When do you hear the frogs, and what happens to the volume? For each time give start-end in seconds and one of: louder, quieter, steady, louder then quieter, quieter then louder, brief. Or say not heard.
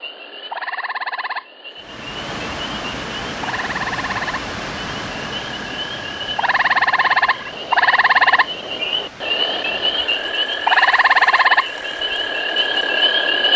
0.0-13.5 louder.